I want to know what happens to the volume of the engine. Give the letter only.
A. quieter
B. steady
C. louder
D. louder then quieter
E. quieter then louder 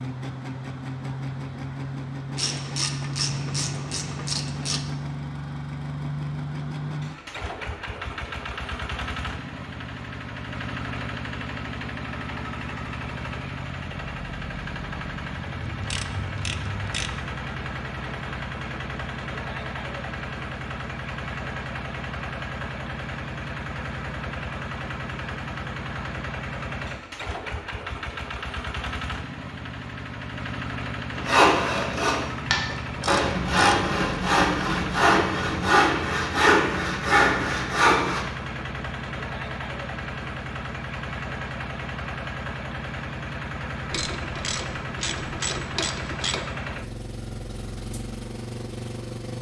B.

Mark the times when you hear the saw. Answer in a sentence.
The saw can be heard from 31.1 to 38.2 s.